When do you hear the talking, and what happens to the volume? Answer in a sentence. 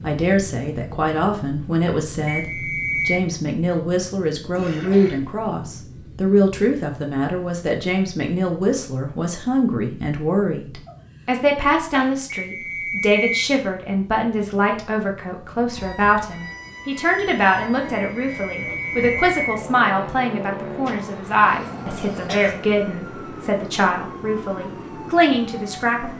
You can hear the talking from 0.0 to 26.1 s, at a steady volume.